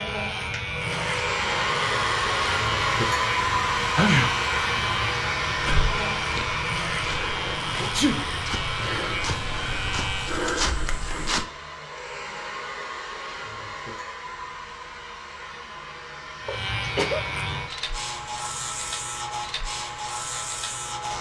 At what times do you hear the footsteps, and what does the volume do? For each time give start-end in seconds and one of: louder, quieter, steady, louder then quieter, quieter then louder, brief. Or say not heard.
5.5-11.4 louder.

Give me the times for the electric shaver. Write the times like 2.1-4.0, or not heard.
0.0-10.4, 16.4-21.1.